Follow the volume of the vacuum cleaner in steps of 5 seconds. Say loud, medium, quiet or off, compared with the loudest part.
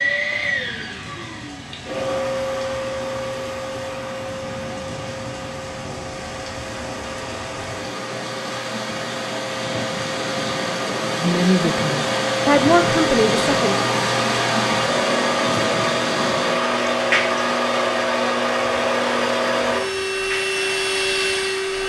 medium, medium, loud, loud, loud.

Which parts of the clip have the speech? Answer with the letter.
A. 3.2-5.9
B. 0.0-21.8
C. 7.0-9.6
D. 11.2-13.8
D.